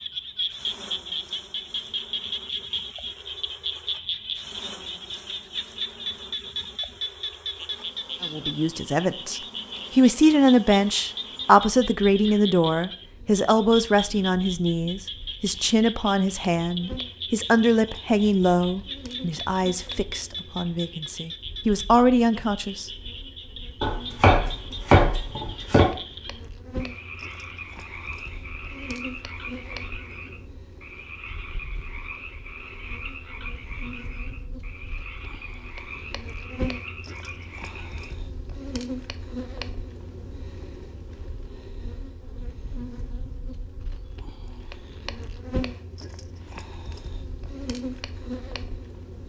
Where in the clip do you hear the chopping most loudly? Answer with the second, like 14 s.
25 s.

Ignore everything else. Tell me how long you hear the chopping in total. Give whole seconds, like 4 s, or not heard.
2 s.